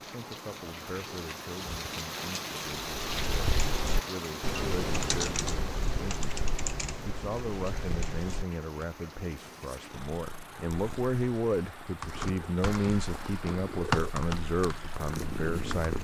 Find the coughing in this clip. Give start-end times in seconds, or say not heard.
not heard.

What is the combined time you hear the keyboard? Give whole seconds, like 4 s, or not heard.
10 s.